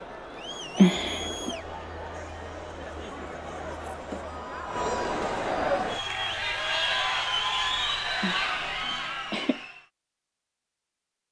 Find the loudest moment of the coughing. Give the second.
1 s.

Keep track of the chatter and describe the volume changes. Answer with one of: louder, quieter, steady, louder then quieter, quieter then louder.
louder.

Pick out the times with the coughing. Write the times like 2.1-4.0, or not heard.
0.8-1.6, 8.2-9.6.